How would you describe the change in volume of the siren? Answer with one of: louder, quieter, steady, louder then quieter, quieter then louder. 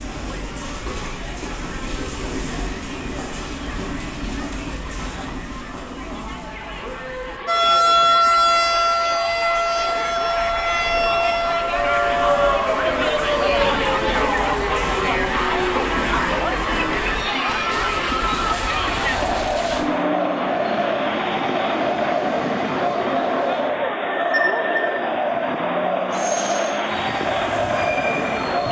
quieter.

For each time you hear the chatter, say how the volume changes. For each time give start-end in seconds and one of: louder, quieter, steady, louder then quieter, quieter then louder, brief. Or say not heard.
0.0-28.6 louder.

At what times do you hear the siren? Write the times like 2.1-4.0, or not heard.
7.5-17.0.